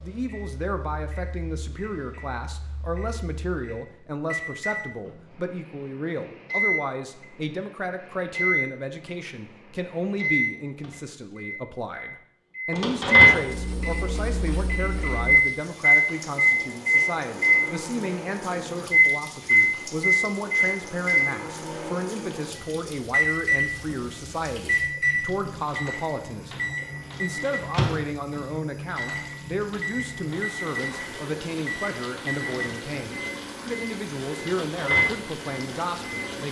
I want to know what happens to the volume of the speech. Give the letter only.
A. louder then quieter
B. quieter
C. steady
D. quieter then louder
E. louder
C.